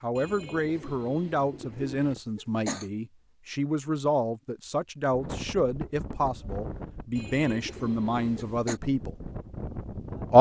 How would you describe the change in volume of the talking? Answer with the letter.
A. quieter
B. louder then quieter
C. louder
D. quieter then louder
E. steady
E.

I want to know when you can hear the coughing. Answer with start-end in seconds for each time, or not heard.
2.1-2.9, 8.2-8.8.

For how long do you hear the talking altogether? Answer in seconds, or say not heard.
9 s.